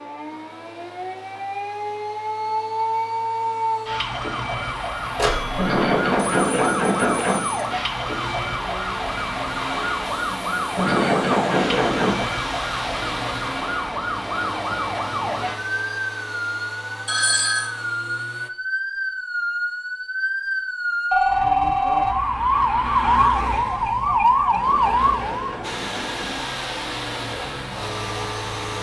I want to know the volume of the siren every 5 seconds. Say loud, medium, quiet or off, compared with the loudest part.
medium, medium, medium, medium, loud, medium.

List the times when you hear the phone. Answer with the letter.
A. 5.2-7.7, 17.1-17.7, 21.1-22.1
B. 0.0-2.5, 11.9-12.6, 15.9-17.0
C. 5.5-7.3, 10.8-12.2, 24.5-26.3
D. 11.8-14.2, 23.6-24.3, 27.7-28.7
A.